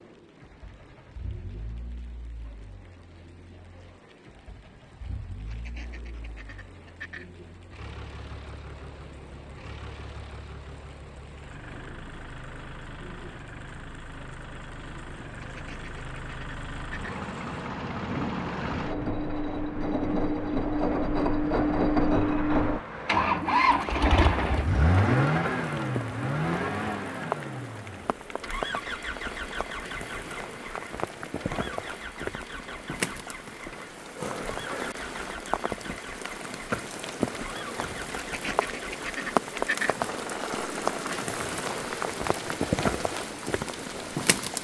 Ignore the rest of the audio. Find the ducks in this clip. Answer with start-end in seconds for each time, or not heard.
5.4-7.3, 15.3-17.2, 38.1-40.0.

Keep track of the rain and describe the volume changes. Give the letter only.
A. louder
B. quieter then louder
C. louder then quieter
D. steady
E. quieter
A.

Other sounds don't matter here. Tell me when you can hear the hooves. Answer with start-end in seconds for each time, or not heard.
not heard.